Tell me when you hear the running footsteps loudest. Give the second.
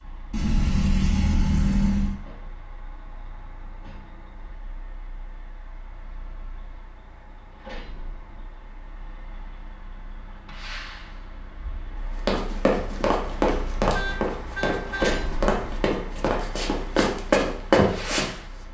18 s.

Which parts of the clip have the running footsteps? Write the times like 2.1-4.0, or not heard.
12.2-18.2.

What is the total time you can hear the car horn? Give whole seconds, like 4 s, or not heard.
3 s.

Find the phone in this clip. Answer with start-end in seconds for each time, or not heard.
not heard.